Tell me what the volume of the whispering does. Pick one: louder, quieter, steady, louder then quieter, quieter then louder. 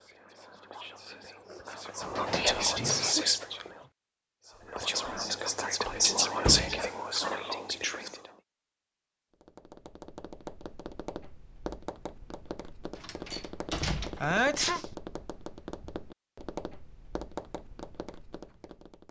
louder then quieter.